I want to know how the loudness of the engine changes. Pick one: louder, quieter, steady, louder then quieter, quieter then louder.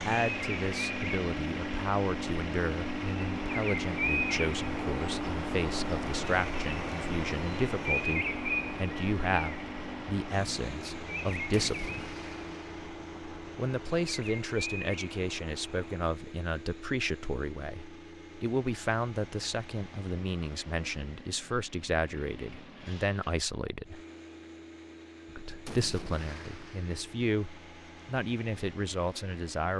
quieter.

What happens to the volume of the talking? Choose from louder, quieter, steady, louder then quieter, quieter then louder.
steady.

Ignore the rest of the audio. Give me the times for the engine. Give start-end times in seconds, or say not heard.
0.0-29.7.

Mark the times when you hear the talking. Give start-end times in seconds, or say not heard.
0.0-11.9, 13.6-24.0, 25.4-29.7.